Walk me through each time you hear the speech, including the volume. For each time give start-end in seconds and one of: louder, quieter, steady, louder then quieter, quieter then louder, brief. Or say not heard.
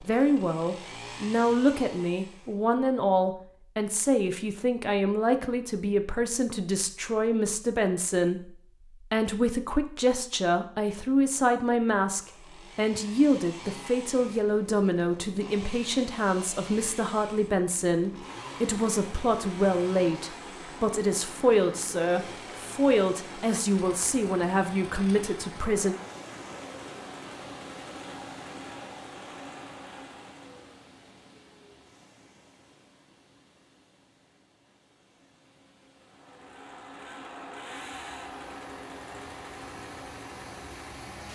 0.0-25.9 steady.